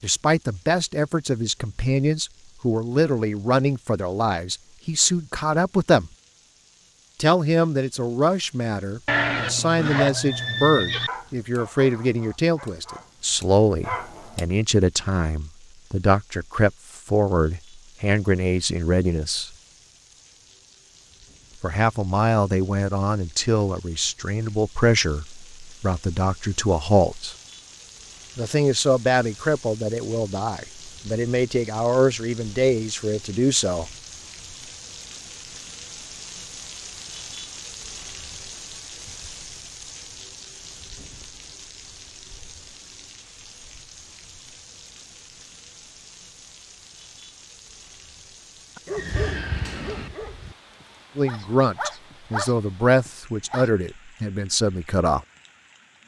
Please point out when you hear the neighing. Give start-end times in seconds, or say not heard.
9.1-11.1, 49.0-50.1.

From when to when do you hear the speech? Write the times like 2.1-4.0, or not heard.
0.0-6.1, 7.2-19.5, 21.6-27.4, 28.4-33.9, 51.1-55.2.